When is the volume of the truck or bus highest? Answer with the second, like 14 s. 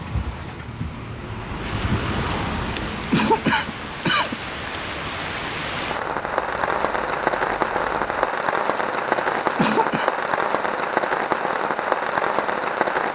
2 s.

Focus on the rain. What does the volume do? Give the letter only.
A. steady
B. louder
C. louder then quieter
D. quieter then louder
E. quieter
B.